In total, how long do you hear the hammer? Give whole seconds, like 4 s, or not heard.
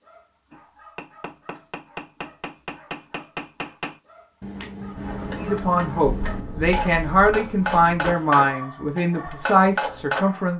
10 s.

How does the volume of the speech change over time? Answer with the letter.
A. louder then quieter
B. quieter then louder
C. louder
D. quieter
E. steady
E.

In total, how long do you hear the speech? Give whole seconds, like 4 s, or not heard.
5 s.